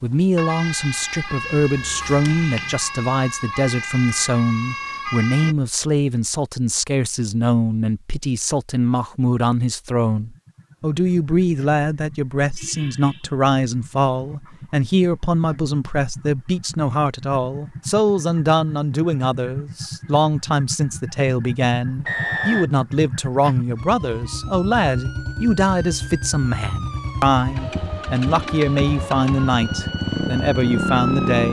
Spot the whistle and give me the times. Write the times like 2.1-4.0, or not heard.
22.1-22.7.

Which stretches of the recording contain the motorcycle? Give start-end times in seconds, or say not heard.
10.2-31.4.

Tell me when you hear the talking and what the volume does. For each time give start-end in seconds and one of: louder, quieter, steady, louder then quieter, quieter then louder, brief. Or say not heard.
0.0-31.4 steady.